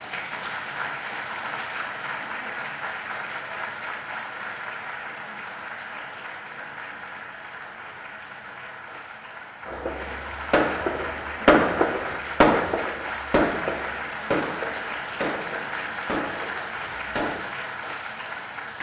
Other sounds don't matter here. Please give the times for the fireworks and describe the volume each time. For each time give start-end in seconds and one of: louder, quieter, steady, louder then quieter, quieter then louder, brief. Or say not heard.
9.7-17.4 louder then quieter.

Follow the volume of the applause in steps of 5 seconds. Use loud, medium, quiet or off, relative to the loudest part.
loud, medium, loud, loud.